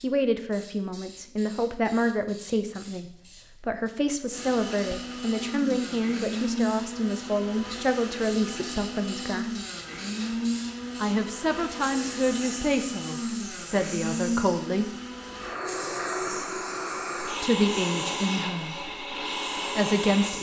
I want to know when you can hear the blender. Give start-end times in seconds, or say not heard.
4.3-20.3.